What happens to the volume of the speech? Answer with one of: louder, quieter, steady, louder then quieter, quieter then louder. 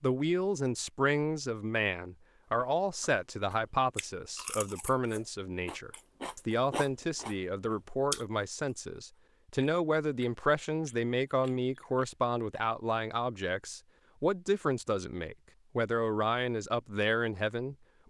steady.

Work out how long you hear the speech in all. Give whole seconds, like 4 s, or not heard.
18 s.